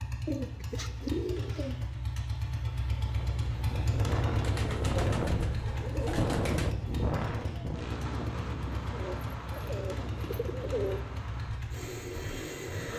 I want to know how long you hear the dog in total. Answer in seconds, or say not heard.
not heard.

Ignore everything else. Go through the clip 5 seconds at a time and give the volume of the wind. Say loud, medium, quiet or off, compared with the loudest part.
loud, loud, medium.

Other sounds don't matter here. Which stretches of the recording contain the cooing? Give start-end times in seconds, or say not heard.
0.2-1.9, 4.4-6.8, 8.8-11.0.